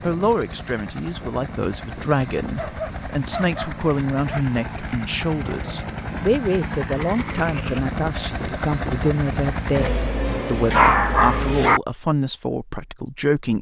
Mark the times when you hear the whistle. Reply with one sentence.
The whistle can't be heard in this clip.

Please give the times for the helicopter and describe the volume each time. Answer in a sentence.
The helicopter can be heard from 0.0 to 9.9 s, getting louder.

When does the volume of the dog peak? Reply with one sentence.
The volume of the dog peaks at 11 seconds.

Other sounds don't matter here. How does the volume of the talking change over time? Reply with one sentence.
The volume of the talking stays about the same.